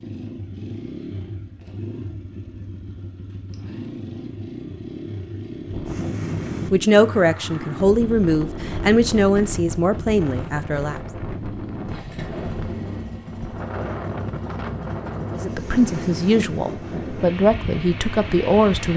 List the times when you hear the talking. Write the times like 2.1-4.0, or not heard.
6.7-11.0, 15.3-18.9.